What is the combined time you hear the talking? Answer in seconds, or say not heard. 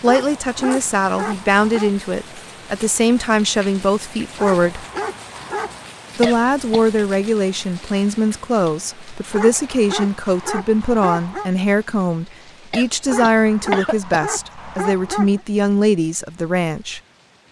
16 s.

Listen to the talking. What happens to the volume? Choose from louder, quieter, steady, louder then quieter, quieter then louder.
steady.